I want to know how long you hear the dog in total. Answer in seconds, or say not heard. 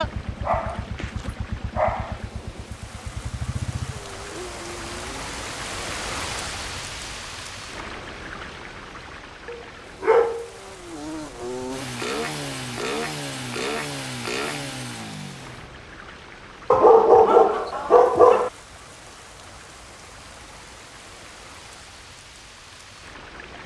5 s.